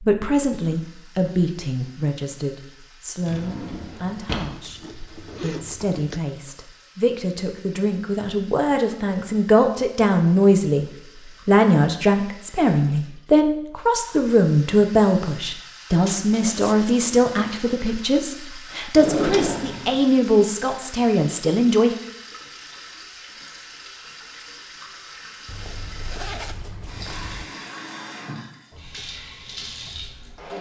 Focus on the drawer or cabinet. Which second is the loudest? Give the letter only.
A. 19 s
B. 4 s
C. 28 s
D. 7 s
A.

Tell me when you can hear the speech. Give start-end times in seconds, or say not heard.
0.0-21.9.